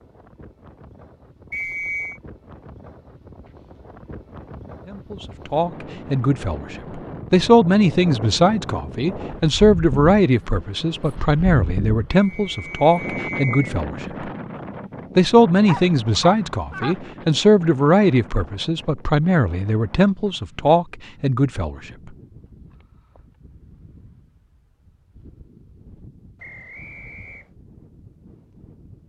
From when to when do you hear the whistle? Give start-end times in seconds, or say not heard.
1.5-2.2, 12.2-13.8, 26.4-27.5.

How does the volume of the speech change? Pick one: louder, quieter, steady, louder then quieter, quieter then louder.
steady.